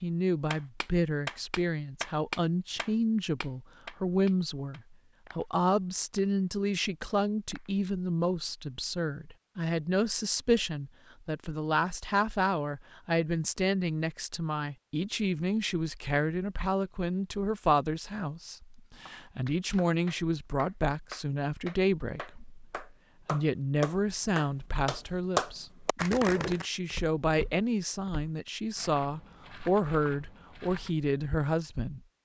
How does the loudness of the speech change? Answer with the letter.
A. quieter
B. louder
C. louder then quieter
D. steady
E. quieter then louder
D.